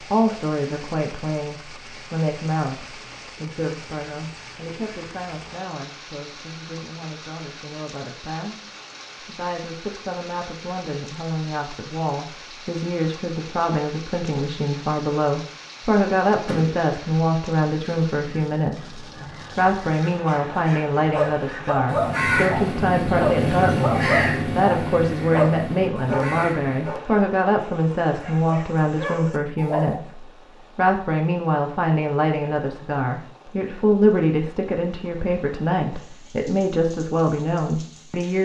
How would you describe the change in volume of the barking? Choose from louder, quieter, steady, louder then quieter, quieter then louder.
quieter then louder.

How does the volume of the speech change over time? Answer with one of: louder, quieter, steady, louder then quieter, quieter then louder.
louder.